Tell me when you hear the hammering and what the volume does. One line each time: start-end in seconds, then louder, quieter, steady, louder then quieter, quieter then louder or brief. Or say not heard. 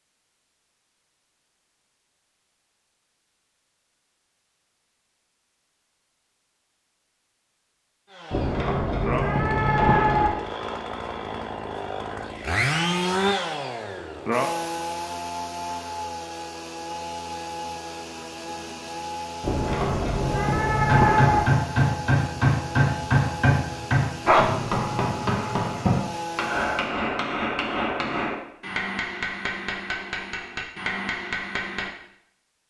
20.8-31.9 quieter.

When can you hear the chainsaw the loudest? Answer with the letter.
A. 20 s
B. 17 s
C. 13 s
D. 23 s
C.